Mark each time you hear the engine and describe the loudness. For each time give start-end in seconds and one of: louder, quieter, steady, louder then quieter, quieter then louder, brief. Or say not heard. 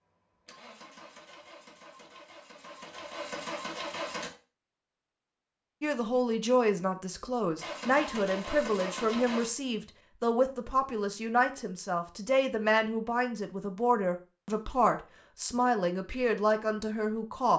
0.0-4.3 louder
7.5-9.5 brief.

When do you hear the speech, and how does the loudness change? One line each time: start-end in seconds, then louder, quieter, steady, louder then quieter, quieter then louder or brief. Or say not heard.
5.8-17.5 steady.